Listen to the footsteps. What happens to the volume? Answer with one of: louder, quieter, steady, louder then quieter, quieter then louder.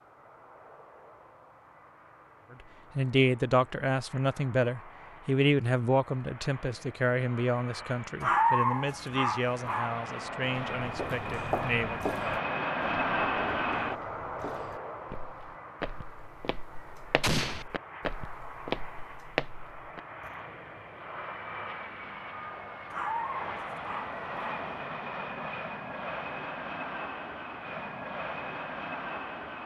quieter then louder.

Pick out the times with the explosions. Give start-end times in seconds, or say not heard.
17.2-17.6.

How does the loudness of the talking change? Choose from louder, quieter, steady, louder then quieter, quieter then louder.
quieter.